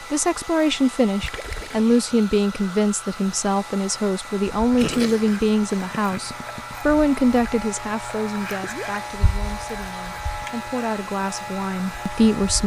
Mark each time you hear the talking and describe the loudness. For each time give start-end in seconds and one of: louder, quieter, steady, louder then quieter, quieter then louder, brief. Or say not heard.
0.0-12.6 quieter.